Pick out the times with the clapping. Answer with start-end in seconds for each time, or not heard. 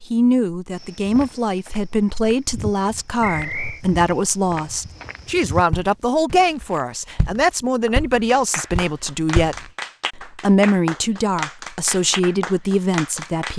7.8-13.5.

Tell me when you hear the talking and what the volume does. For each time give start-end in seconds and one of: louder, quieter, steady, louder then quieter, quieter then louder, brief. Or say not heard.
0.0-13.5 steady.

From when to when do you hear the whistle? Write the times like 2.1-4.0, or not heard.
3.2-3.8.